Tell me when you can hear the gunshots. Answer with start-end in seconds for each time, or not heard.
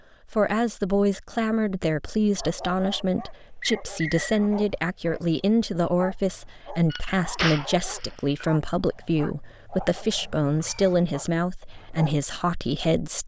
6.9-8.4.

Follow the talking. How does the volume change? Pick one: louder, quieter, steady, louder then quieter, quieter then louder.
steady.